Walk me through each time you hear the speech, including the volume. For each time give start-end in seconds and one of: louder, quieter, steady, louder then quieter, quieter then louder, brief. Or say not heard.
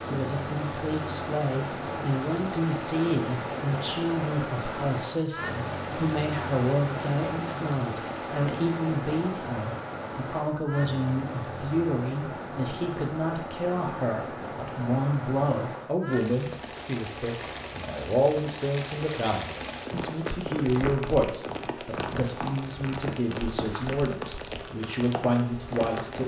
0.1-26.2 steady.